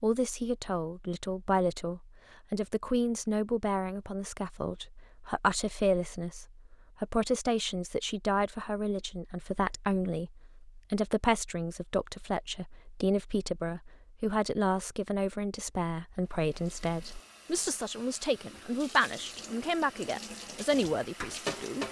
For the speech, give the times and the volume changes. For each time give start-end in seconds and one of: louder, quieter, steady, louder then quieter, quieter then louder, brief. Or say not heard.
0.0-21.8 steady.